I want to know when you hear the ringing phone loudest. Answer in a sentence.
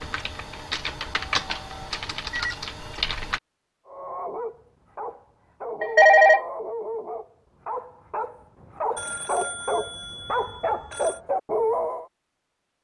The volume of the ringing phone peaks at 6 seconds.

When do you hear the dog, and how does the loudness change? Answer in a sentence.
The dog can be heard from 3.9 to 12.1 s, getting louder.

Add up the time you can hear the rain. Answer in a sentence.
You can't hear the rain here.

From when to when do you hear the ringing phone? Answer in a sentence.
The ringing phone can be heard from 1.1 to 2.5 s, from 5.8 to 6.4 s and from 8.9 to 11.2 s.